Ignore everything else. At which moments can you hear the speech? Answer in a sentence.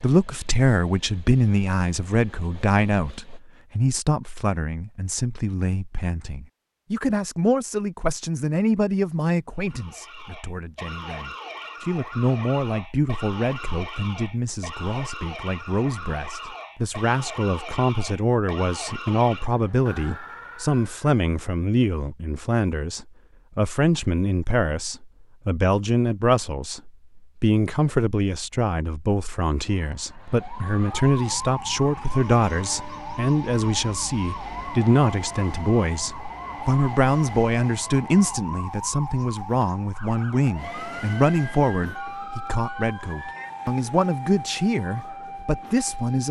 You can hear the speech from 0.0 to 46.2 s.